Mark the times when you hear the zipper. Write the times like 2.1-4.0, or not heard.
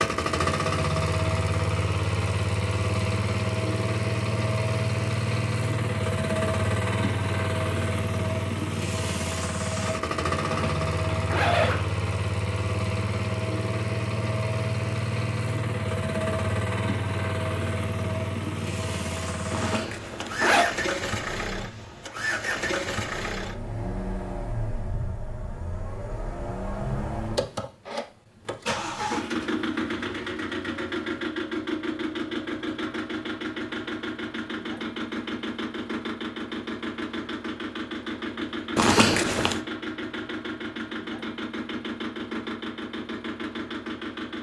10.4-11.8, 19.5-20.6, 38.8-39.6.